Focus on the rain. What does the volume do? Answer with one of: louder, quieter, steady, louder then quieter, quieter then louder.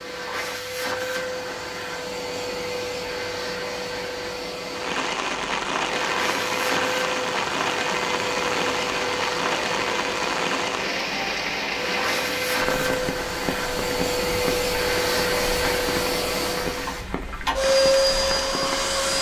quieter.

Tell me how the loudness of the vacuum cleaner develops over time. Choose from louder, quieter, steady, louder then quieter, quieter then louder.
louder.